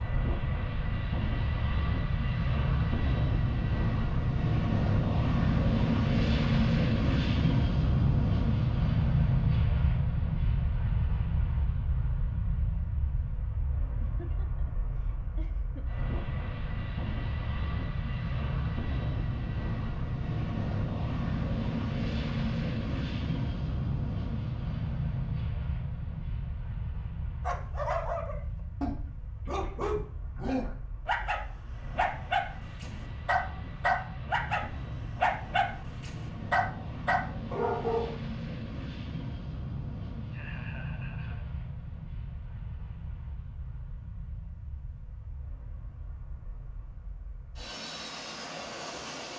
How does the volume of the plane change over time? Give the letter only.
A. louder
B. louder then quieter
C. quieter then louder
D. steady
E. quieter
E.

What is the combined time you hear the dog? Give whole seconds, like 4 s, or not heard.
11 s.